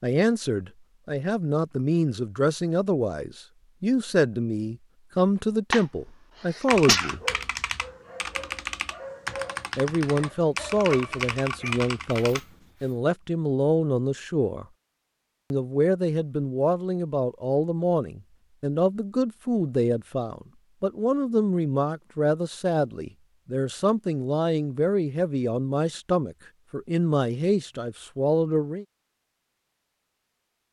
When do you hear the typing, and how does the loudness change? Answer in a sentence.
You can hear the typing from 6.7 to 12.4 s, at a steady volume.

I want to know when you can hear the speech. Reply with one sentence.
The speech can be heard from 0.0 to 7.2 s, from 9.8 to 14.7 s and from 15.5 to 28.9 s.